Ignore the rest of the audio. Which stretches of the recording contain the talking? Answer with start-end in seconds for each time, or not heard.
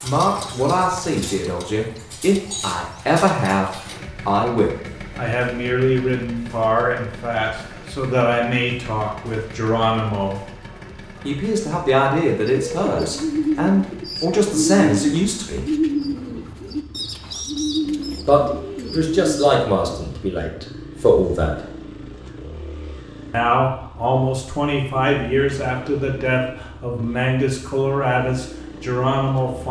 0.0-10.5, 11.2-15.7, 18.2-21.6, 23.3-29.6.